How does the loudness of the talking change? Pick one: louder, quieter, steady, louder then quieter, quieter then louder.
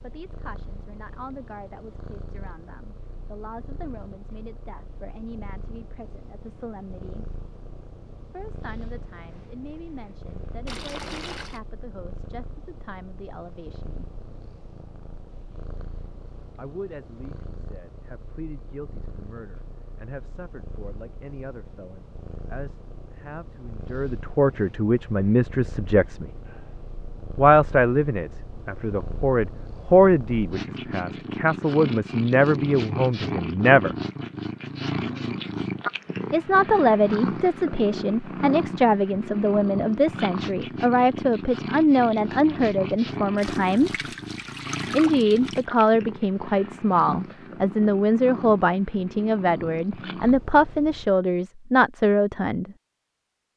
louder.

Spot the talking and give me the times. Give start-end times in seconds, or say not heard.
0.0-7.3, 8.3-14.1, 16.6-26.3, 27.4-34.0, 36.3-44.0, 44.9-52.7.